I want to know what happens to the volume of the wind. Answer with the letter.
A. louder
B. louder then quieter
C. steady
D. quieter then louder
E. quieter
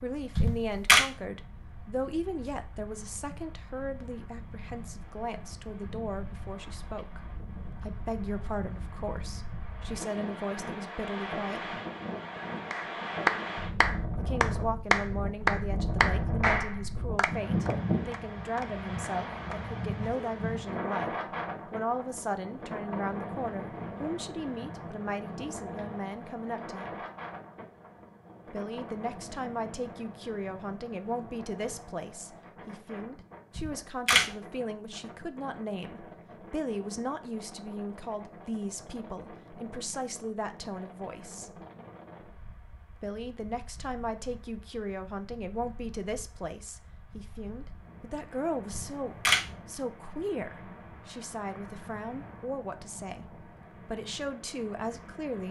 B.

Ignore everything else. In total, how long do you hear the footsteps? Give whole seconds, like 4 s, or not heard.
not heard.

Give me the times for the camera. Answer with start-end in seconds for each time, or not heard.
0.3-1.0, 33.5-34.2, 48.7-49.4.